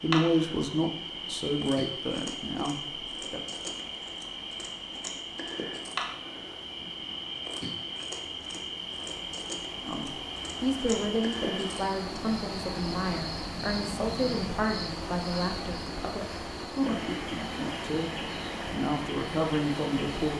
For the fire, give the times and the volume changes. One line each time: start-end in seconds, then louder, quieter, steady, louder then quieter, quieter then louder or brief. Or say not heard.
not heard.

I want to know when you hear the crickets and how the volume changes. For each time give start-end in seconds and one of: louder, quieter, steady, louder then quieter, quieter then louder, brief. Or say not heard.
0.0-20.3 steady.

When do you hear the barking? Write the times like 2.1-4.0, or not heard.
not heard.